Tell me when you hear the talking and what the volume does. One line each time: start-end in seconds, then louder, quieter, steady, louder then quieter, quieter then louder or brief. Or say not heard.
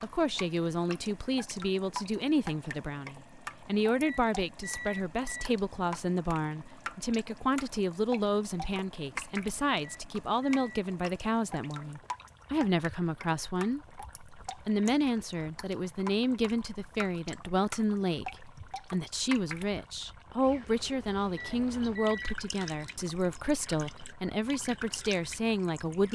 0.0-26.1 steady.